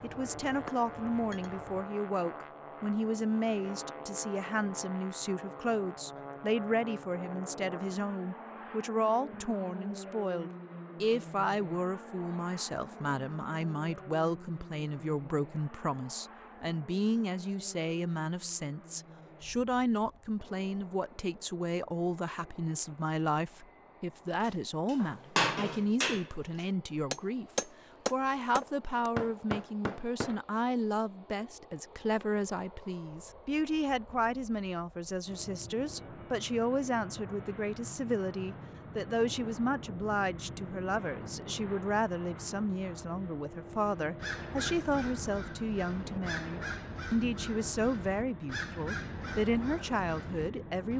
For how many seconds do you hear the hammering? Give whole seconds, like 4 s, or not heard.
8 s.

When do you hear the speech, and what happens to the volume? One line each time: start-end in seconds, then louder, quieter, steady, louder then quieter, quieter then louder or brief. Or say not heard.
0.0-50.9 steady.